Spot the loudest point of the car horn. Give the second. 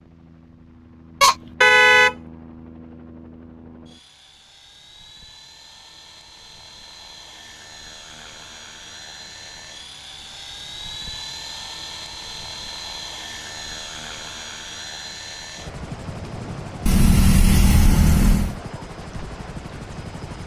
2 s.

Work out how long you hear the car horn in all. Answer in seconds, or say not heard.
3 s.